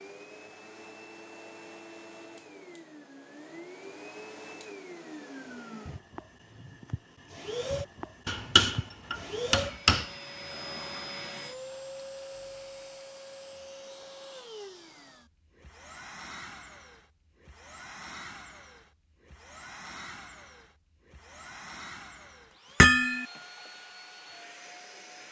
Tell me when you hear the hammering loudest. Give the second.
23 s.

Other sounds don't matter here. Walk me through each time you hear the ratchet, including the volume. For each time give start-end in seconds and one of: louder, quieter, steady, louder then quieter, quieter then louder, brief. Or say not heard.
not heard.